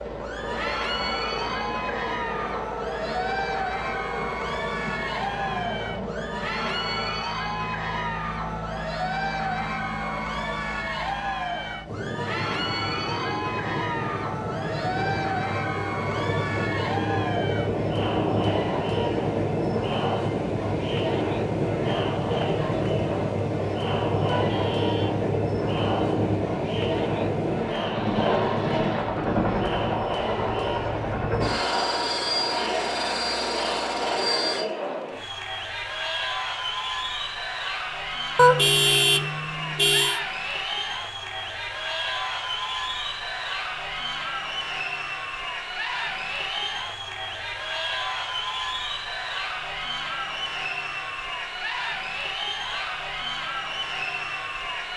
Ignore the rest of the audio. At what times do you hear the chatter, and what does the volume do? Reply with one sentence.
The chatter can be heard from 0.1 to 54.9 s, at a steady volume.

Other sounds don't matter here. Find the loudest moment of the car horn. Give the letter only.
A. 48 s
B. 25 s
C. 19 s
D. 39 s
D.